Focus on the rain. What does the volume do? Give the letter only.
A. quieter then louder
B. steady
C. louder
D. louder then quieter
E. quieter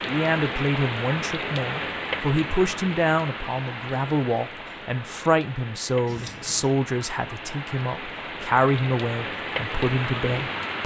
A.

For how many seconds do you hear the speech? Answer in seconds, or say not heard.
11 s.